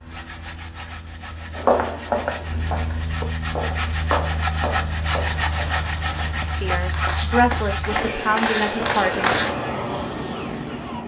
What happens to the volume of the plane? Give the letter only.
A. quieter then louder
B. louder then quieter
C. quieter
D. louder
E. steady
D.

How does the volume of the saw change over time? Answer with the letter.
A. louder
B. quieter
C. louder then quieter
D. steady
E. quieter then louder
C.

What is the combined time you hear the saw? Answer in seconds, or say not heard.
11 s.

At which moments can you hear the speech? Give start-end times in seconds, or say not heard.
6.4-9.3.